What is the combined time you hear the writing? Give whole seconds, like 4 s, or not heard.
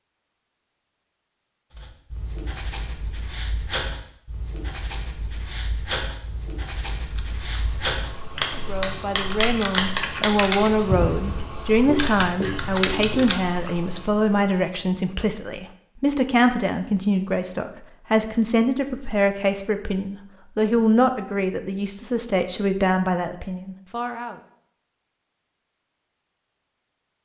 12 s.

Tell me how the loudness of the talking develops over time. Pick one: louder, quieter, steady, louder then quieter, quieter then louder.
steady.